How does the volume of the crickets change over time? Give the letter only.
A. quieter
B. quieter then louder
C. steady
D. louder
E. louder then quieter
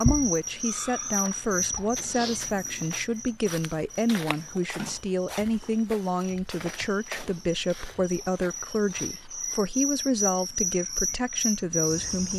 B.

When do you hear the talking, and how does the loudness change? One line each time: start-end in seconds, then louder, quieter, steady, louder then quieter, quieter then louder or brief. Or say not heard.
0.0-12.3 steady.